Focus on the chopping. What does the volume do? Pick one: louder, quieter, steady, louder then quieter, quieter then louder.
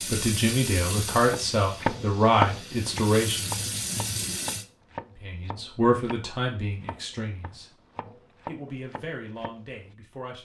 quieter then louder.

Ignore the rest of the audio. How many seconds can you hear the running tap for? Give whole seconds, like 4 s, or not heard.
5 s.